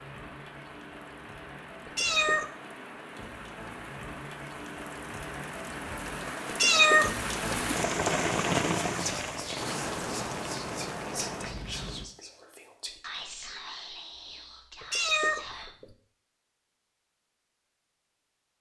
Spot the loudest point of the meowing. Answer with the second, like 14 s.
7 s.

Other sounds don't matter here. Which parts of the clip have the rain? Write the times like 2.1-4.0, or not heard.
0.0-12.1.